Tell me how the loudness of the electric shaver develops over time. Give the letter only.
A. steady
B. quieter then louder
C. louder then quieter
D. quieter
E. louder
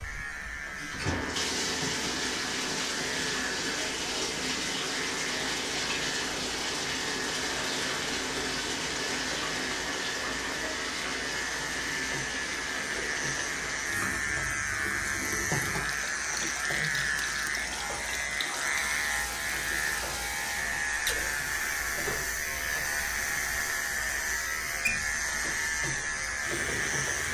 E.